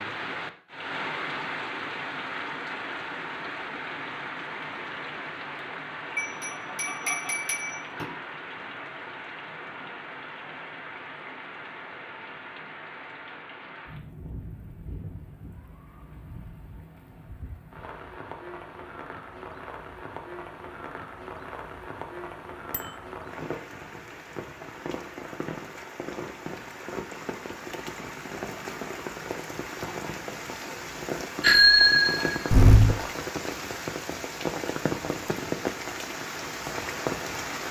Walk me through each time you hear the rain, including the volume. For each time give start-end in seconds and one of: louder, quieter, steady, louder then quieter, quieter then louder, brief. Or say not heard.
0.0-37.6 quieter then louder.